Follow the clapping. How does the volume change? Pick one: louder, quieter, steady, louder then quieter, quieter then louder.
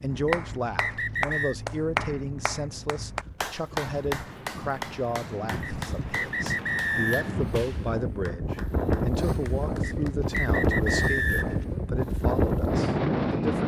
quieter.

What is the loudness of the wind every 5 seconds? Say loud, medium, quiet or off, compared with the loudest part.
quiet, medium, loud.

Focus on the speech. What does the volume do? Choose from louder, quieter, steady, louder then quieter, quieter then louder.
steady.